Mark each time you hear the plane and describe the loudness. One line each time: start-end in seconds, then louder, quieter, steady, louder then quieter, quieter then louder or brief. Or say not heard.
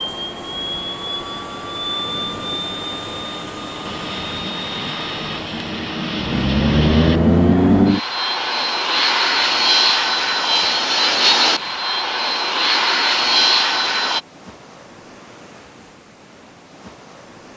0.0-14.2 louder.